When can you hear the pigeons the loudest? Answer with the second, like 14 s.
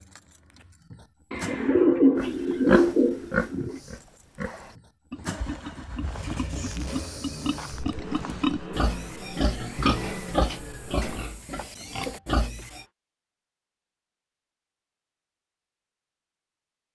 2 s.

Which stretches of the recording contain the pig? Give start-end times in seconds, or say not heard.
2.1-12.8.